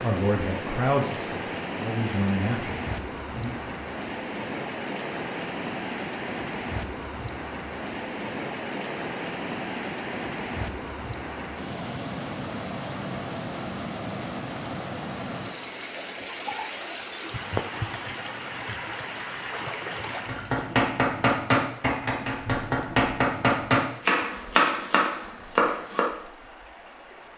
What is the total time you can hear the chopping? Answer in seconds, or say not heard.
6 s.